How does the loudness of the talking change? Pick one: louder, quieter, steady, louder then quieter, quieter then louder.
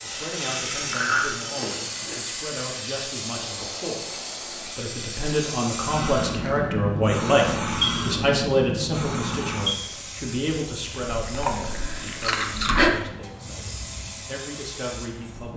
louder then quieter.